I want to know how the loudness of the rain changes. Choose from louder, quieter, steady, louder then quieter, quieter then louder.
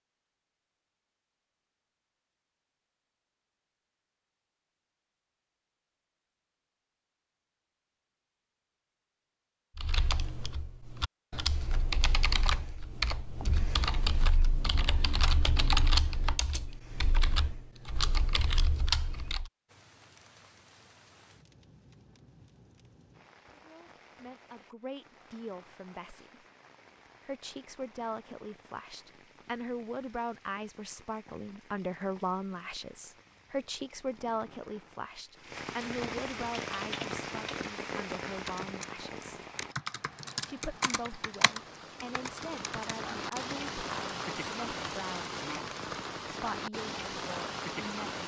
louder.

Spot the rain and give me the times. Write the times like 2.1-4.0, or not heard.
19.6-48.2.